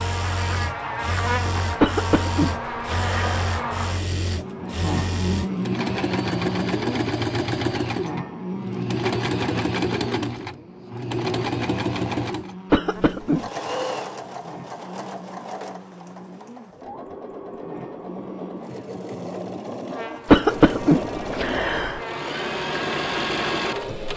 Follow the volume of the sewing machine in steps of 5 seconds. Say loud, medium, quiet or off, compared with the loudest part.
medium, loud, loud, medium, loud.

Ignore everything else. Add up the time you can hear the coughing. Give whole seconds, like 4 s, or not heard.
4 s.